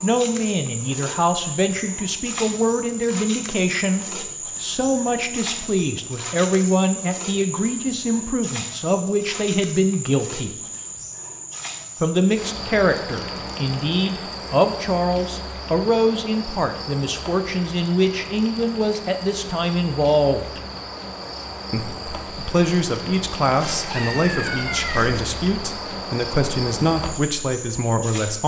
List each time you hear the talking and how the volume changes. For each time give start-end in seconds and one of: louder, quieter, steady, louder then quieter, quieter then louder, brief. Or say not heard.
0.0-10.6 steady
12.0-20.6 steady
21.7-28.4 steady.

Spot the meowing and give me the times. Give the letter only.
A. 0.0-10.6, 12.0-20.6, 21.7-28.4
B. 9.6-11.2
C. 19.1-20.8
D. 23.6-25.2
D.